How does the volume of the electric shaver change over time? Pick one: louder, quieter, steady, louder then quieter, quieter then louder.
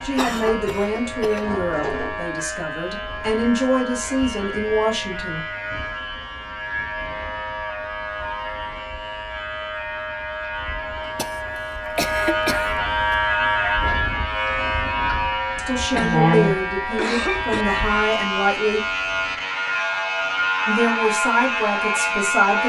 louder.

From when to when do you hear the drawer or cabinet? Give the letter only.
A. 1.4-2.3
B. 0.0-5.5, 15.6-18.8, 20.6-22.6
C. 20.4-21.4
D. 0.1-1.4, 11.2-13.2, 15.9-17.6
A.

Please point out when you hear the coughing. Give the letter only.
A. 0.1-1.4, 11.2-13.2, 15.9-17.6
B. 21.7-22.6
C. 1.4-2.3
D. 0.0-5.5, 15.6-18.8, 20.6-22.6
A.